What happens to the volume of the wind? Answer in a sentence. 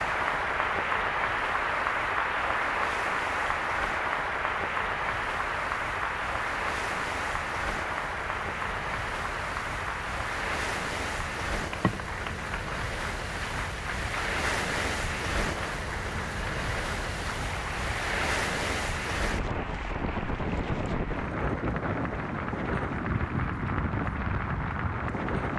The volume of the wind goes up.